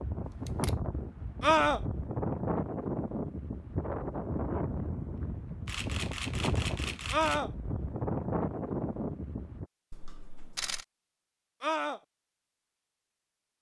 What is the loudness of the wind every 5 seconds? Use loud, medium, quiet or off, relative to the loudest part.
loud, loud, off.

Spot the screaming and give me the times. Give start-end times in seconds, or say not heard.
1.4-1.8, 7.1-7.5, 11.6-12.0.